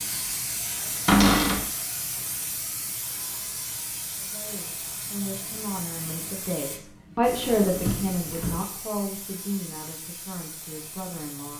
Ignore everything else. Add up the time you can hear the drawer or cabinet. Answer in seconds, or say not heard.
2 s.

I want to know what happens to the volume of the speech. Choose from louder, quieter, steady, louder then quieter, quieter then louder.
louder then quieter.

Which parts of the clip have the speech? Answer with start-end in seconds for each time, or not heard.
4.2-11.5.